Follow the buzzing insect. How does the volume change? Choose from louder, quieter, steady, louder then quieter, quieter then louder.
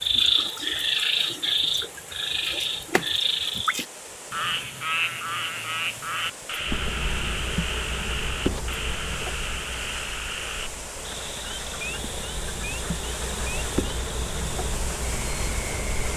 quieter then louder.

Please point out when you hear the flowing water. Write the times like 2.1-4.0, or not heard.
0.0-16.1.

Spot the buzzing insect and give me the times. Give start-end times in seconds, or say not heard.
6.6-16.1.